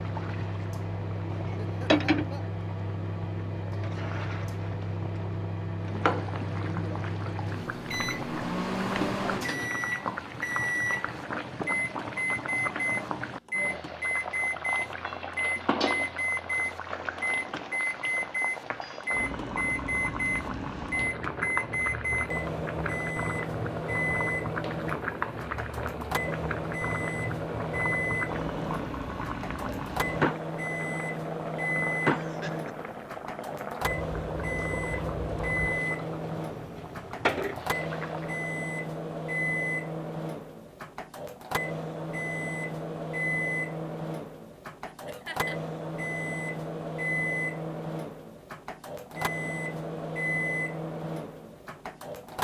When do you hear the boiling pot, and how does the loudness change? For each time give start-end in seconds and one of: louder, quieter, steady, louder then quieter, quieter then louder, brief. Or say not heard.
0.0-38.5 steady.